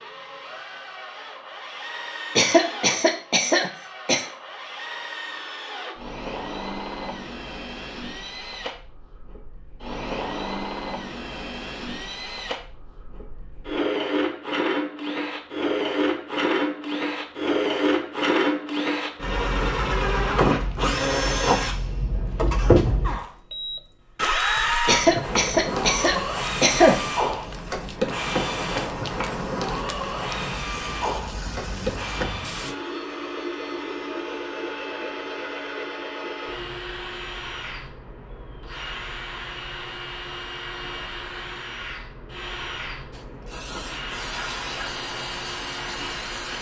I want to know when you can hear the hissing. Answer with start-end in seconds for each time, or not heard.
25.6-32.8, 43.1-46.5.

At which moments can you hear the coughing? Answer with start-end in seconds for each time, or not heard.
2.4-4.2, 24.9-27.0.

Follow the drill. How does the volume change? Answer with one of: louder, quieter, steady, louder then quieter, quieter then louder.
louder then quieter.